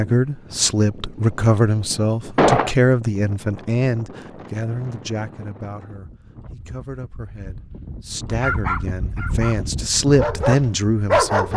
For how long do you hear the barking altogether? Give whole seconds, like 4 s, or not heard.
3 s.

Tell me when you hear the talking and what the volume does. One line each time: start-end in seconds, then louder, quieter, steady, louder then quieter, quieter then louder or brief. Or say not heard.
0.0-11.5 quieter then louder.